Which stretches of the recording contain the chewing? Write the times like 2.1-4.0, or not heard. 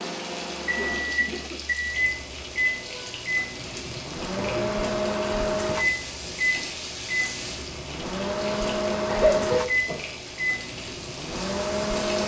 not heard.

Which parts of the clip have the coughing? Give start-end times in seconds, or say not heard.
0.8-1.6, 4.3-5.0, 9.1-10.1.